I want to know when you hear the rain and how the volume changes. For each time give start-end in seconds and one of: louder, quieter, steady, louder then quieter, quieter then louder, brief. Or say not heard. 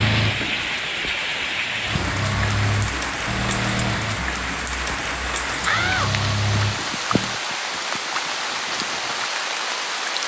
0.0-10.2 steady.